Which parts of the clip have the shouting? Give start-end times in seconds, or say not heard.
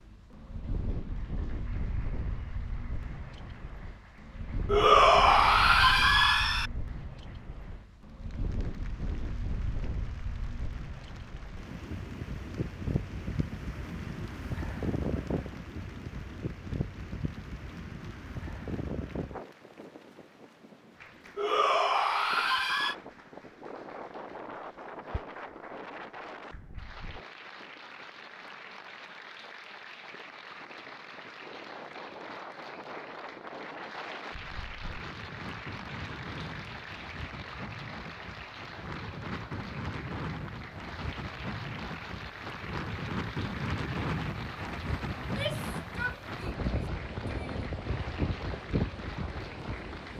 4.7-6.7, 21.4-22.9, 45.2-47.8.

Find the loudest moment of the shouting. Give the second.
5 s.